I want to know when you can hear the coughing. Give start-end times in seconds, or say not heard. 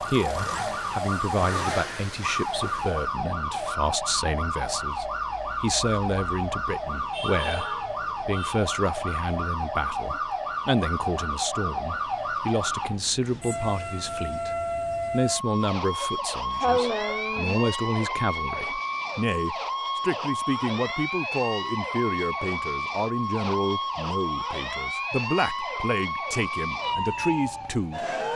16.0-17.6.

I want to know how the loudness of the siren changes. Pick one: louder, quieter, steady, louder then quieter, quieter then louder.
steady.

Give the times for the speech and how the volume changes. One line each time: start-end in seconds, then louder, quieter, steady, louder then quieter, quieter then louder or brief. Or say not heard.
0.0-28.1 steady.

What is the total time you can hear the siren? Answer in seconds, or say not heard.
28 s.